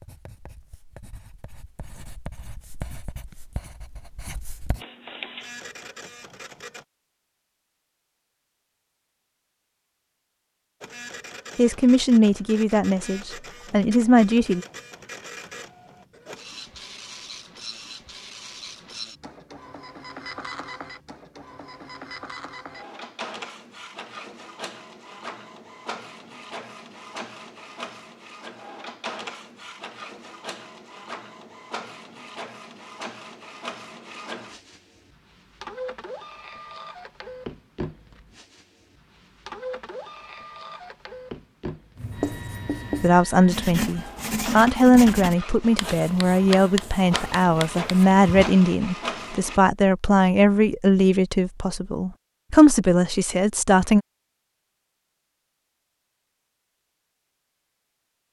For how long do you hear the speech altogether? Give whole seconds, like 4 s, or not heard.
14 s.